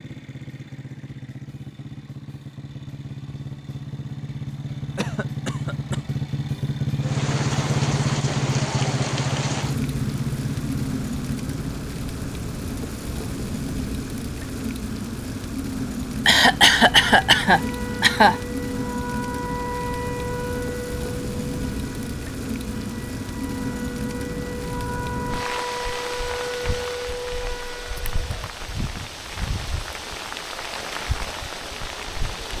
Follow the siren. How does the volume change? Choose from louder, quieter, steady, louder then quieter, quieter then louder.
quieter then louder.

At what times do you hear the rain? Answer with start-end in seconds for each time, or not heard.
7.0-32.5.